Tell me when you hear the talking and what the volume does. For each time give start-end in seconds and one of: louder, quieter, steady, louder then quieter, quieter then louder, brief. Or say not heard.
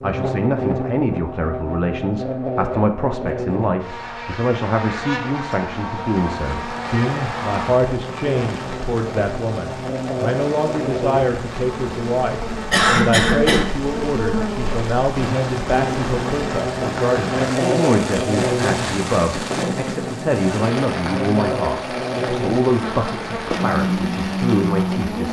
0.0-25.2 steady.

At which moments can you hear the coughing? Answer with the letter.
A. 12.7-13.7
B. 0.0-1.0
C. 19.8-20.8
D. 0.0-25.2
A.